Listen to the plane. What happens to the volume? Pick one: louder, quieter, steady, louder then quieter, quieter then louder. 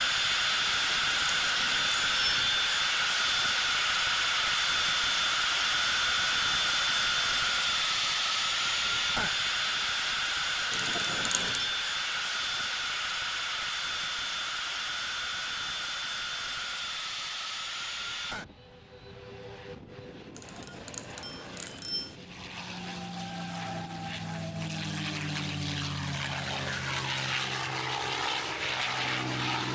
quieter then louder.